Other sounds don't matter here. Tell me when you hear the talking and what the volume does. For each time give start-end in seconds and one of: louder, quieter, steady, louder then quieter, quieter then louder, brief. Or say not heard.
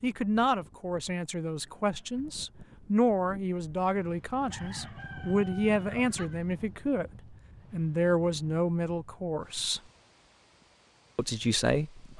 0.0-9.8 steady
11.2-12.1 brief.